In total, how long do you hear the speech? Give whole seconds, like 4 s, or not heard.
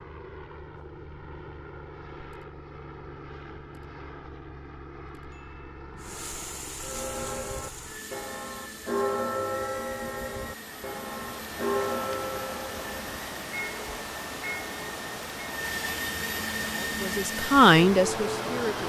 2 s.